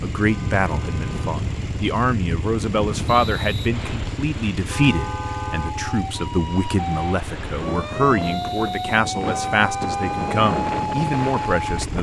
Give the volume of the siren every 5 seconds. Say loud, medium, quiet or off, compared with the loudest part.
off, loud, loud.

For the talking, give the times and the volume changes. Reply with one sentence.
The talking can be heard from 0.0 to 11.9 s, at a steady volume.